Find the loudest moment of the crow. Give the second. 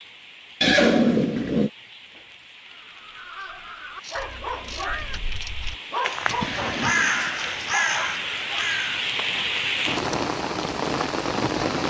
7 s.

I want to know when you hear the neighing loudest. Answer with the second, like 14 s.
1 s.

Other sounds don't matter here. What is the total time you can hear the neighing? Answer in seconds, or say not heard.
2 s.